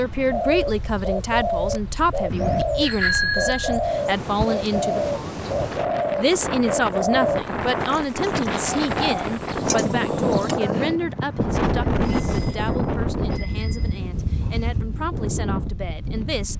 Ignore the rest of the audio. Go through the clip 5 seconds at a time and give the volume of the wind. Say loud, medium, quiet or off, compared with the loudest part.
medium, loud, loud, medium.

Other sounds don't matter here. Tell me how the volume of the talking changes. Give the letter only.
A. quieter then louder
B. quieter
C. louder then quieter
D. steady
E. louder
B.